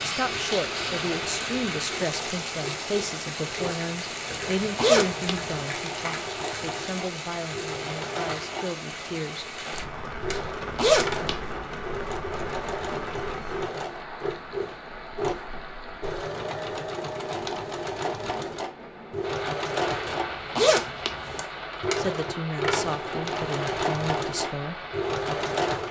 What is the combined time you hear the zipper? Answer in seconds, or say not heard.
4 s.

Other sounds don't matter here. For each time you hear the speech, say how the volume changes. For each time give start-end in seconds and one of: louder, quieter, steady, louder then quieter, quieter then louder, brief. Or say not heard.
0.0-9.6 quieter
21.9-24.8 brief.